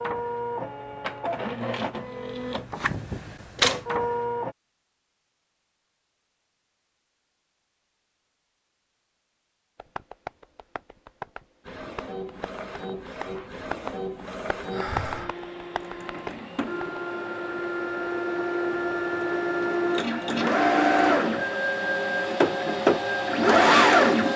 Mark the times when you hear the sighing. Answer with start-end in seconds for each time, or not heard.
14.7-15.3.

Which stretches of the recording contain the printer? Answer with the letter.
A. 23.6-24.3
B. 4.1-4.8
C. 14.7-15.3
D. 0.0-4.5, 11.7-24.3
D.